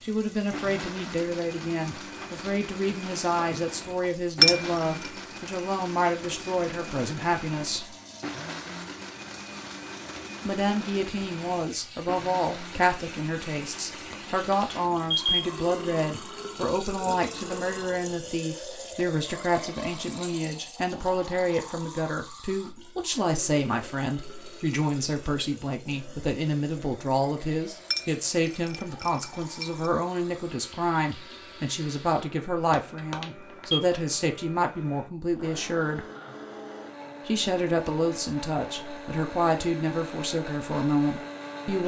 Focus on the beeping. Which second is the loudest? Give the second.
15 s.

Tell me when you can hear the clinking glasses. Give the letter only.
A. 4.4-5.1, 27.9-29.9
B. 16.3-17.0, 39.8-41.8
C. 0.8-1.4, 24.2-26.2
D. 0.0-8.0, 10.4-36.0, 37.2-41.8
A.